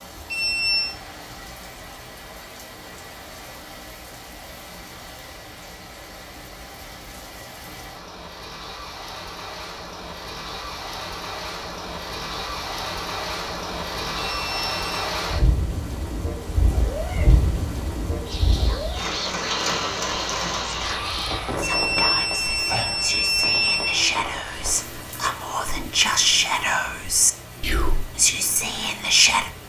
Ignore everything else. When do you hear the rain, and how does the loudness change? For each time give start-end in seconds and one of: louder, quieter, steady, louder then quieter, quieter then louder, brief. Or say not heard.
0.0-29.6 louder then quieter.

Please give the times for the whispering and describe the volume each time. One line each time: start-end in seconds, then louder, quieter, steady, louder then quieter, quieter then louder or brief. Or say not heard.
18.2-29.5 louder.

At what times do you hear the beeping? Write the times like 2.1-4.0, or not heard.
0.3-0.9, 14.3-15.1, 21.6-24.0.